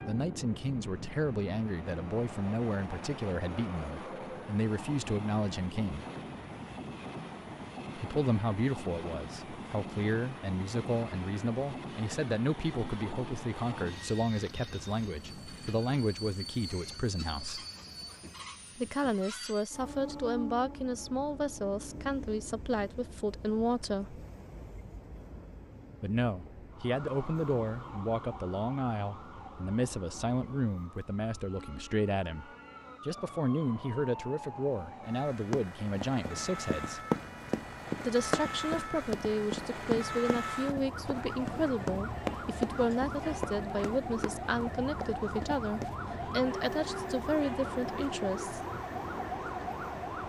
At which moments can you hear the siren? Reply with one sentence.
The siren can be heard from 26.7 to 50.2 s.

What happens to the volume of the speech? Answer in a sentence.
The loudness of the speech stays about the same.